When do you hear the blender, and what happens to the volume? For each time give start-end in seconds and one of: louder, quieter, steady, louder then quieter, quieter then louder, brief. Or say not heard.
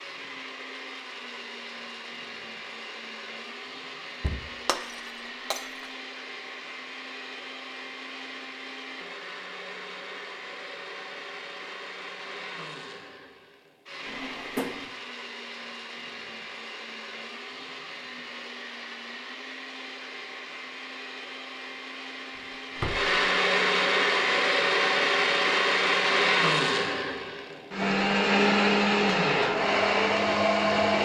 0.0-31.0 louder.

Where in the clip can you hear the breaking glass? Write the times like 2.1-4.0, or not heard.
4.7-5.9.